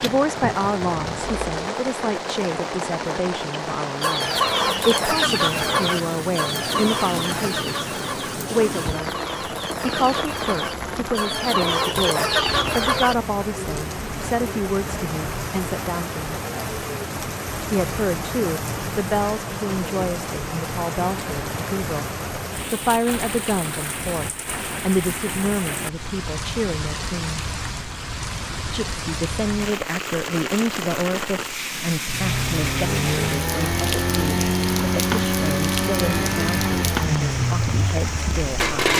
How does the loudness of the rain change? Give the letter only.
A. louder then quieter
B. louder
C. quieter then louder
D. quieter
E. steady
E.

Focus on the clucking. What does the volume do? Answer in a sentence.
The loudness of the clucking goes down, then up.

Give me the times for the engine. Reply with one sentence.
You can hear the engine from 0.0 to 1.4 s and from 32.0 to 38.9 s.